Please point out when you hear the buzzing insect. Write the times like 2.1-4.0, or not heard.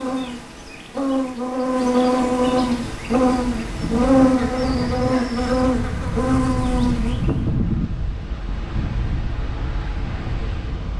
0.0-7.4.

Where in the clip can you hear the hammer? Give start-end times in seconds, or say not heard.
not heard.